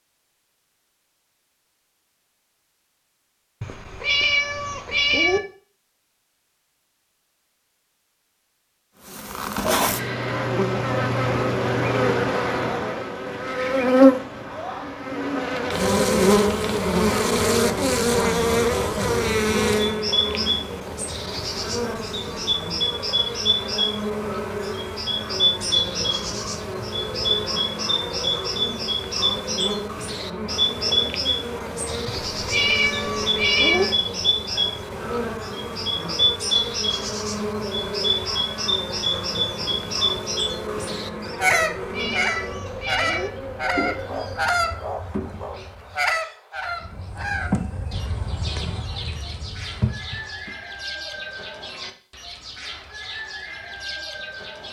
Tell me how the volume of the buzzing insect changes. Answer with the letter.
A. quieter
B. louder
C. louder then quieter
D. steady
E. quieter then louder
A.